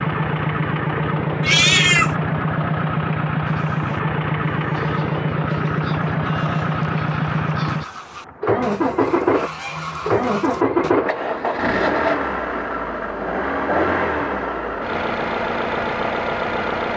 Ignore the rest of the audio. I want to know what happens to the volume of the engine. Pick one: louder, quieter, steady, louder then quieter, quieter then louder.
steady.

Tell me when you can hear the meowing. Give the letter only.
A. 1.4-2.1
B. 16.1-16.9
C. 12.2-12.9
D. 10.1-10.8
A.